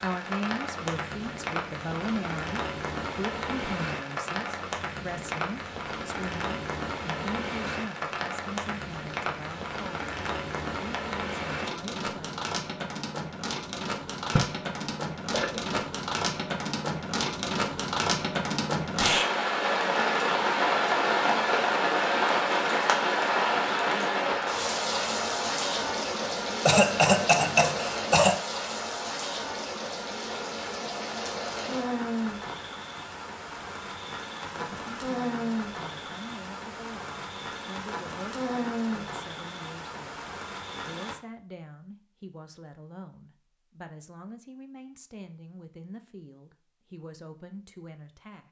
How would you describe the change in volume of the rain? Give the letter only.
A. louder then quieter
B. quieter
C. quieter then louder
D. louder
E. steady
A.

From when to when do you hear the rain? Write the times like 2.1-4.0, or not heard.
0.0-41.1.